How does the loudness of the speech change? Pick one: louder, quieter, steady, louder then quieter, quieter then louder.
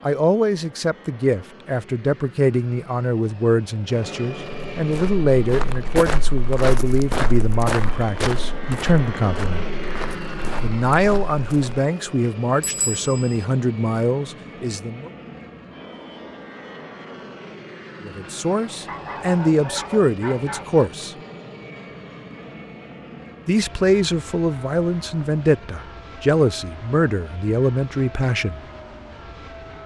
steady.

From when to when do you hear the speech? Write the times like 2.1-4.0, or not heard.
0.0-9.7, 10.6-15.1, 18.0-21.1, 23.4-28.6.